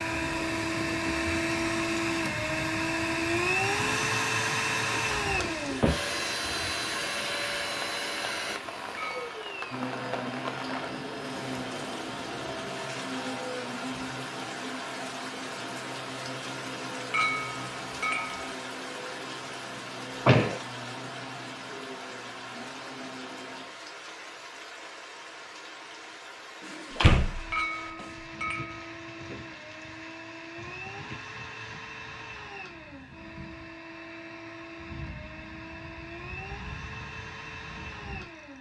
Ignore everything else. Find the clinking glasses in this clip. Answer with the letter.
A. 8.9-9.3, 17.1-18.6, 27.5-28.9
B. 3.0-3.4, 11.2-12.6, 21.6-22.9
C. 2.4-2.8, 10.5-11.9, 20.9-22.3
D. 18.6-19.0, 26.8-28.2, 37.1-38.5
A.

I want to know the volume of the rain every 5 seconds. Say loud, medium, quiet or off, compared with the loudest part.
loud, loud, loud, loud, loud, medium, medium, medium.